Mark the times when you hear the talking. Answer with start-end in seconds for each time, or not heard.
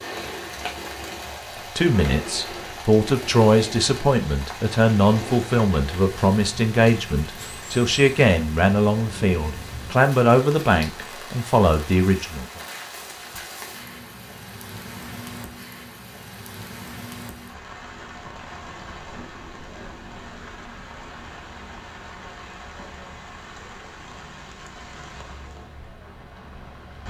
1.8-12.6.